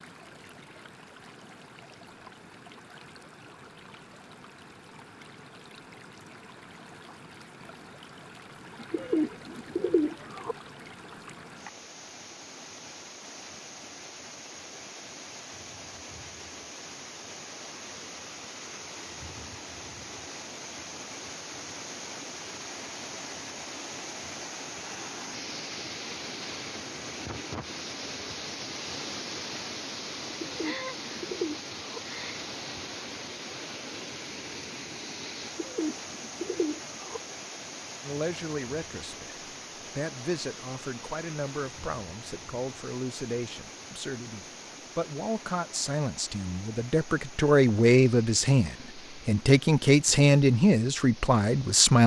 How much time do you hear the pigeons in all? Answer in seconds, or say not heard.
5 s.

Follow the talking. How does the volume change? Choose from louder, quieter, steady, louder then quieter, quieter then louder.
louder.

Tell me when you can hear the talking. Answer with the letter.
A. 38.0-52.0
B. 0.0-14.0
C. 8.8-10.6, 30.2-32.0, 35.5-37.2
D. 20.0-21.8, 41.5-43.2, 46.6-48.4
A.